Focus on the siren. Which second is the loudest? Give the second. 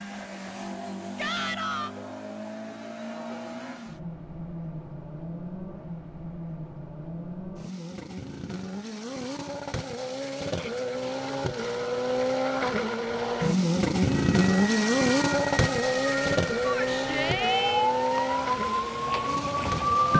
20 s.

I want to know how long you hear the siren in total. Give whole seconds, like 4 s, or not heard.
6 s.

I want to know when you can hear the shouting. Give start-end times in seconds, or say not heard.
1.1-1.9, 10.4-10.8, 16.6-17.9.